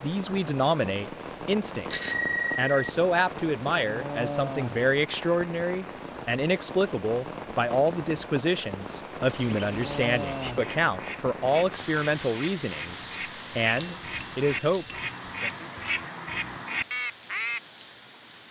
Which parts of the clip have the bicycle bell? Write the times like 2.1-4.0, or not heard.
1.9-2.9, 9.8-10.6, 13.8-15.2.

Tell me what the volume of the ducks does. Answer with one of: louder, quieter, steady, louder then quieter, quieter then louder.
louder.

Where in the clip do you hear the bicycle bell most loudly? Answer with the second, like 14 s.
2 s.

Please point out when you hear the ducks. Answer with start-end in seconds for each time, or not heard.
9.2-17.6.